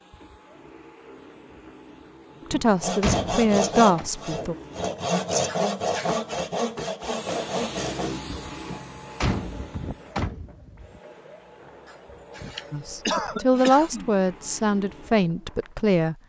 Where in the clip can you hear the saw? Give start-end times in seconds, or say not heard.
2.8-8.2.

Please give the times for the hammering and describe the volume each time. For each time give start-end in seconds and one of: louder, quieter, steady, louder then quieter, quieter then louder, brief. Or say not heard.
not heard.